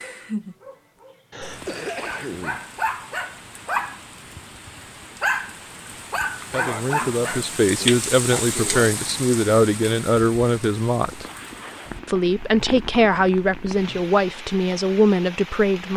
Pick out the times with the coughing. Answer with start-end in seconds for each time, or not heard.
1.3-2.6, 6.4-8.9, 11.0-12.0.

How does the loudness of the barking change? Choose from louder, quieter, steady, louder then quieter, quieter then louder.
louder.